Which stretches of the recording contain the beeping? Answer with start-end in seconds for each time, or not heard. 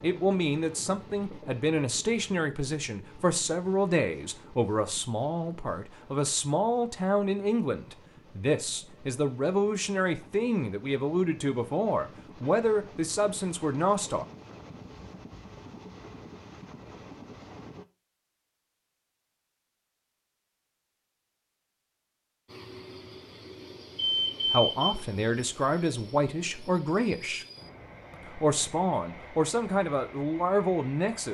23.9-24.9.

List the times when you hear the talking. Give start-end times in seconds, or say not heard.
0.0-14.2, 24.5-27.4, 28.2-31.3.